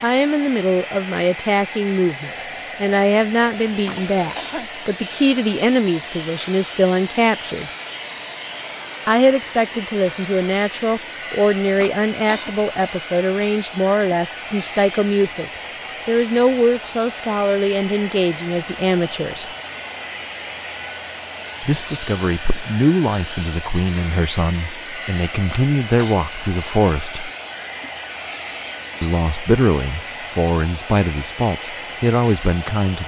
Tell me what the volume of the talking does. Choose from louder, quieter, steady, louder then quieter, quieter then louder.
steady.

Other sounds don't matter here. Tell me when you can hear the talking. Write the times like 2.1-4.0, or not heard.
0.0-7.7, 9.1-19.5, 21.6-27.3, 29.0-33.0.